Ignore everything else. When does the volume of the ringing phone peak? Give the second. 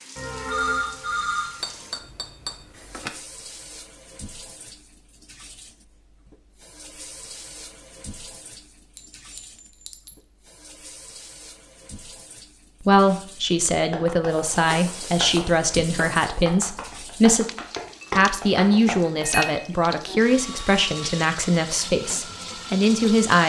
1 s.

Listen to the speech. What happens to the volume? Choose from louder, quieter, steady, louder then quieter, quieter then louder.
steady.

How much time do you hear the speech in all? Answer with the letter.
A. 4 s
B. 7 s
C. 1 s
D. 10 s
D.